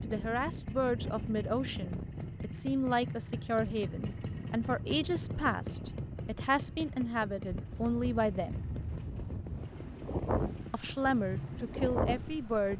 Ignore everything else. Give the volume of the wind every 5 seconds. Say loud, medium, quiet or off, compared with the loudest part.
medium, medium, loud.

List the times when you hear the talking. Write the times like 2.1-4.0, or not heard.
0.0-8.6, 10.7-12.7.